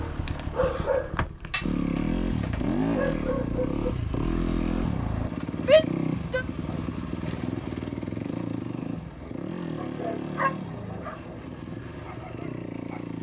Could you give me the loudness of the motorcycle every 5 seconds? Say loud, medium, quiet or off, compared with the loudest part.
loud, loud, medium.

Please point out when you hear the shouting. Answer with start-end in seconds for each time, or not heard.
5.6-6.5.